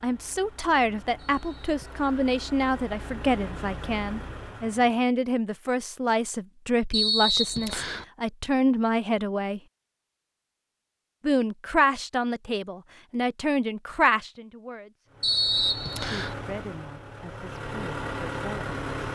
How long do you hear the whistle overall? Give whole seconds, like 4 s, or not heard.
3 s.